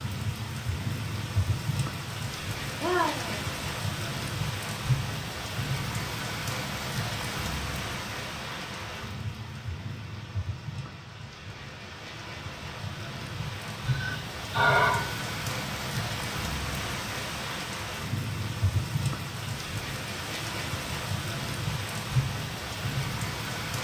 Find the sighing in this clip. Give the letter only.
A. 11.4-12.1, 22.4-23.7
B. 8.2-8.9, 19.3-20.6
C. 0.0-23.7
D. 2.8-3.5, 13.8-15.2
D.